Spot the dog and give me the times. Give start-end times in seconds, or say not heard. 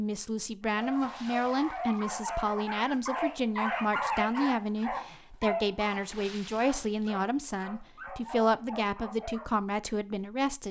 0.7-9.4.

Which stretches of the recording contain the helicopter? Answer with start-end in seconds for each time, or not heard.
not heard.